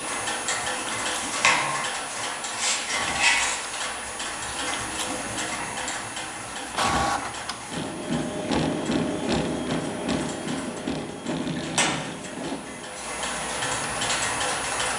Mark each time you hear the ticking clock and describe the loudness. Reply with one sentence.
You can hear the ticking clock from 0.0 to 14.9 s, getting quieter then louder.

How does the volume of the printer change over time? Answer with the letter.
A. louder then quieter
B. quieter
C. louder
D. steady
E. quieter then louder
A.